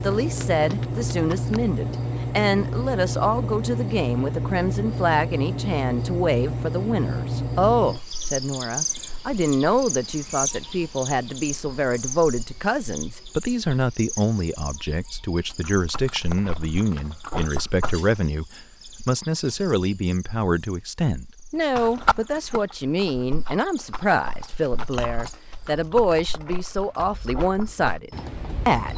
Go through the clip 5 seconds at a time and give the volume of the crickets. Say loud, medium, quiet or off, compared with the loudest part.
loud, loud, medium, quiet, quiet, quiet.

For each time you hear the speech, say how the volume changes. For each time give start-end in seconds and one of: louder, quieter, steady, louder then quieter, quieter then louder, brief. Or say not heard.
0.0-28.9 steady.